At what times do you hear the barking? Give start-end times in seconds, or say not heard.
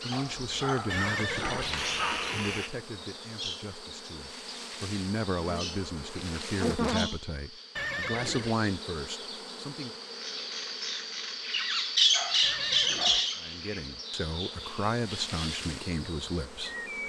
0.1-2.3, 12.1-13.3.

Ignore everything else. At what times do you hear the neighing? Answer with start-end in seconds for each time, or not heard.
0.9-2.8, 7.8-8.6, 12.4-13.3.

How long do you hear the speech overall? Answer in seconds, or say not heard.
13 s.